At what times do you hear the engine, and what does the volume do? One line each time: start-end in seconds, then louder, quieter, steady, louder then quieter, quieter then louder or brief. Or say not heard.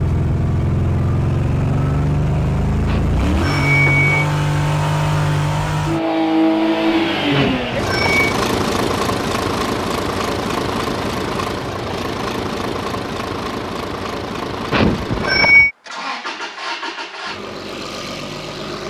0.0-18.8 quieter.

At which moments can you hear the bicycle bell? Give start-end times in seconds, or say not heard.
2.9-4.2, 7.3-8.3, 14.7-15.7.